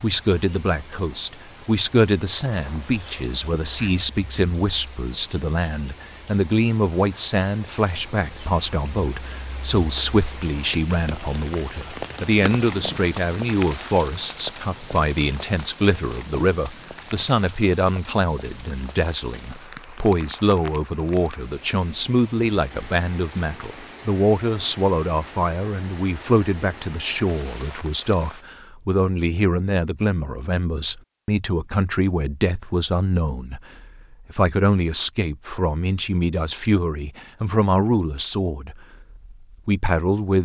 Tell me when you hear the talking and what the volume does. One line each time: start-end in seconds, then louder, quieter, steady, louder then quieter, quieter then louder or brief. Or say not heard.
0.0-40.4 steady.